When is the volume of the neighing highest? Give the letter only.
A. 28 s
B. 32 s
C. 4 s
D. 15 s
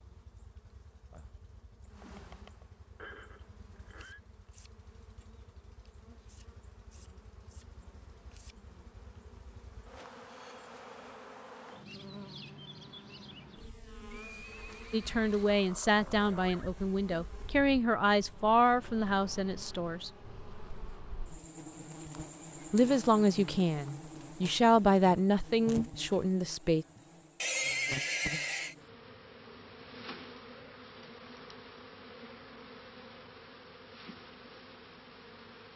A.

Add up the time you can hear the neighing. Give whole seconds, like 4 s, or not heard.
5 s.